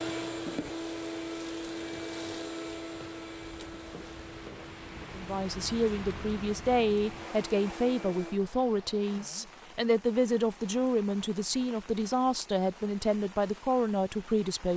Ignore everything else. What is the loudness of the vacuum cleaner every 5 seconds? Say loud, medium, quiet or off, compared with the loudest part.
loud, medium, off.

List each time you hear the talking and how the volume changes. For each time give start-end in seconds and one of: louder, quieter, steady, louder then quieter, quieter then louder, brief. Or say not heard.
5.2-14.7 steady.